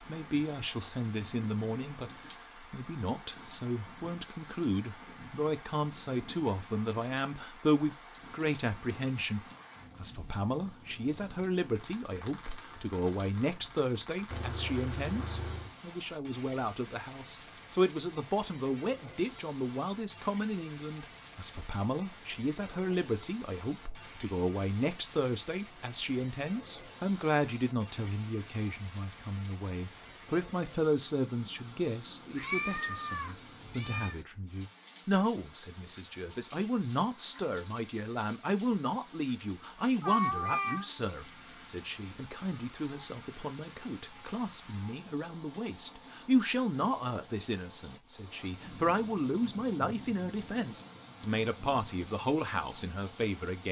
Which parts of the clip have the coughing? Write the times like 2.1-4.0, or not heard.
not heard.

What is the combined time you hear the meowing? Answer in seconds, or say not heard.
4 s.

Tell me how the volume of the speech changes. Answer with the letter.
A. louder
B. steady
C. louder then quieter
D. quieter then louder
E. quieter
B.